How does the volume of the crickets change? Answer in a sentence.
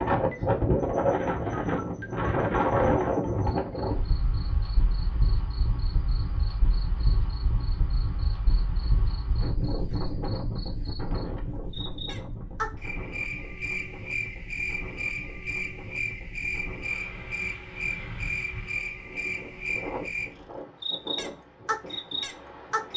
The volume of the crickets goes up.